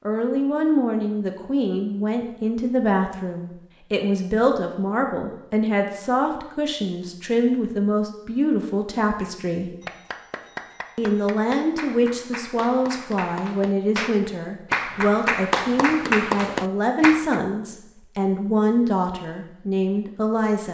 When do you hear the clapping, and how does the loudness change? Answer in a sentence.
The clapping can be heard from 9.2 to 17.4 s, getting louder.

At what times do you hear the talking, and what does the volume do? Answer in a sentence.
The talking can be heard from 0.1 to 9.7 s, at a steady volume; and from 10.9 to 20.6 s, at a steady volume.